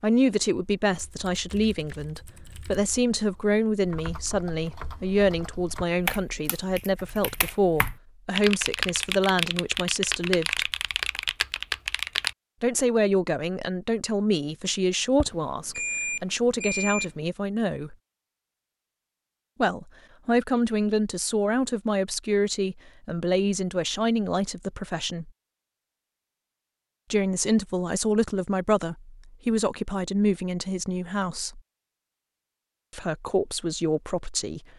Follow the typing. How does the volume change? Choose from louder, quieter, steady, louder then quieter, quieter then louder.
louder.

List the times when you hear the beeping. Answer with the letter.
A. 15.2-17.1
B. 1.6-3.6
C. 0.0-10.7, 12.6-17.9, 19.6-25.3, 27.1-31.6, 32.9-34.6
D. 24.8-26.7
A.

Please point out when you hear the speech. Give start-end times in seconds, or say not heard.
0.0-10.7, 12.6-17.9, 19.6-25.3, 27.1-31.6, 32.9-34.6.